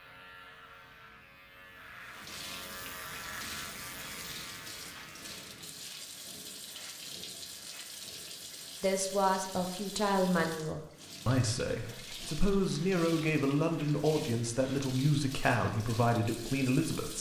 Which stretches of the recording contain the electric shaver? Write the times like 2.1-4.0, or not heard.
0.0-5.7.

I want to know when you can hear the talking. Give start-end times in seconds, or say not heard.
8.8-17.1.